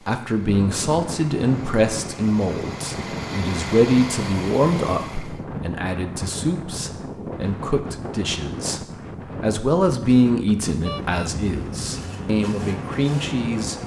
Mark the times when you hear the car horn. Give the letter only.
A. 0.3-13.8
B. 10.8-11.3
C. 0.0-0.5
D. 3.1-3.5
B.